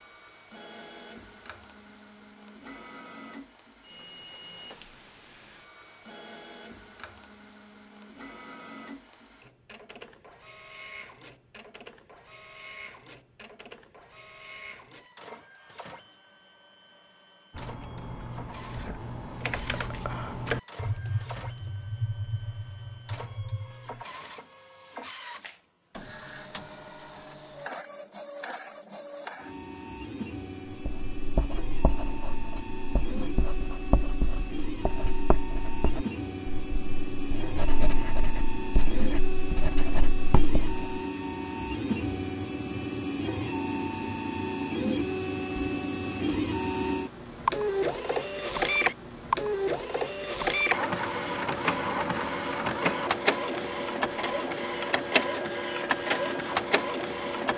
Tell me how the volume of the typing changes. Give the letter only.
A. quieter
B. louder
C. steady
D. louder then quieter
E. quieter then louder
D.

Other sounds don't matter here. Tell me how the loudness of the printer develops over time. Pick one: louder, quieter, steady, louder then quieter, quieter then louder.
louder.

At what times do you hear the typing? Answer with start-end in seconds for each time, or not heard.
17.5-24.1.